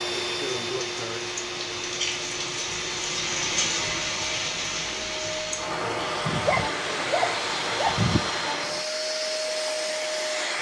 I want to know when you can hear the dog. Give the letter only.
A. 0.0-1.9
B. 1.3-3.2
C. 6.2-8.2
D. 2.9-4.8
C.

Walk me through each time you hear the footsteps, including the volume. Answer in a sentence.
The footsteps can't be heard in this clip.